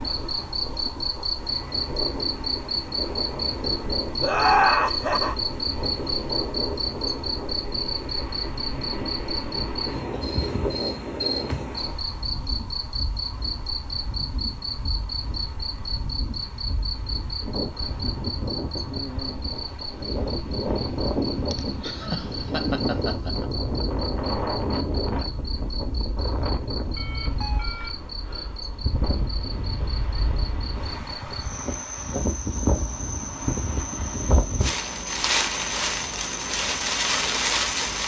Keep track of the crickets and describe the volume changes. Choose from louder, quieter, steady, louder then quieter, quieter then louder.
quieter.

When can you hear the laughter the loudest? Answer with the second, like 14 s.
5 s.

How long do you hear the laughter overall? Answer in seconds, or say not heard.
3 s.